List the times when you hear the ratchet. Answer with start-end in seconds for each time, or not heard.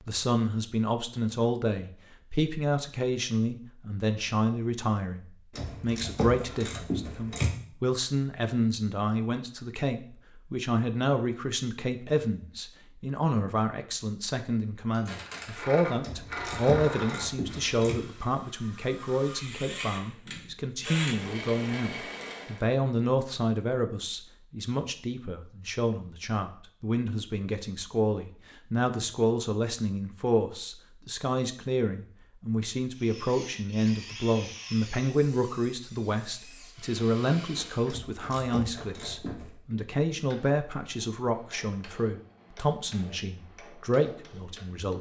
5.5-7.5, 16.0-17.9, 37.9-39.5.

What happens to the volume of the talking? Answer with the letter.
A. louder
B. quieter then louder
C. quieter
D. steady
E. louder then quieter
D.